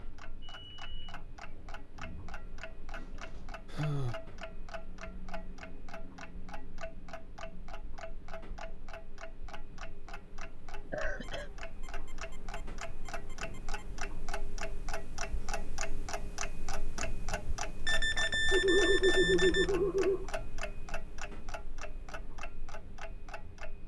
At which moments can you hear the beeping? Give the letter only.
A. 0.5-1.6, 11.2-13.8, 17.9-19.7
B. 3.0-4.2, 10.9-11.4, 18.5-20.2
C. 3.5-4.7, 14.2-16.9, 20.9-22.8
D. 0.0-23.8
A.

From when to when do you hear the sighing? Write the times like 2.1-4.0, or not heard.
3.0-4.2, 10.9-11.4, 18.5-20.2.